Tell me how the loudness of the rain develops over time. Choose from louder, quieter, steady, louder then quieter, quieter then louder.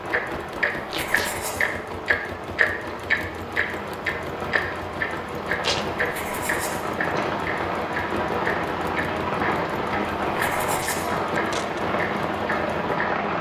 louder.